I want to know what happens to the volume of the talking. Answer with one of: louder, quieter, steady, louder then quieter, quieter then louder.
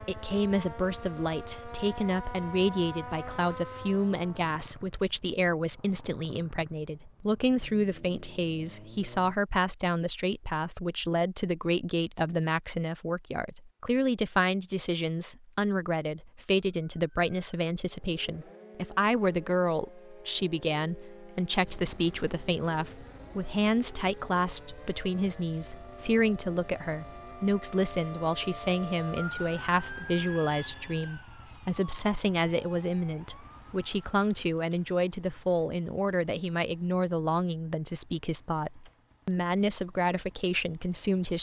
steady.